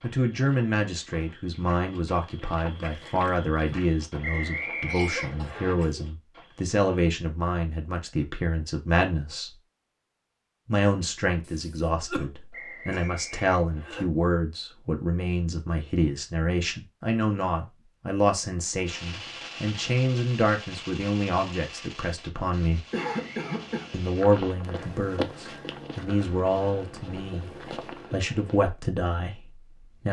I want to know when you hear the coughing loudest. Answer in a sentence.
The volume of the coughing peaks at 23 seconds.